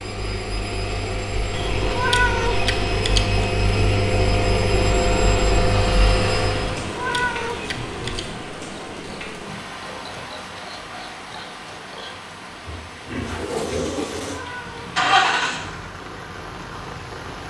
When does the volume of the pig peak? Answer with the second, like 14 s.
14 s.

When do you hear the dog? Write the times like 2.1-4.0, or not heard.
not heard.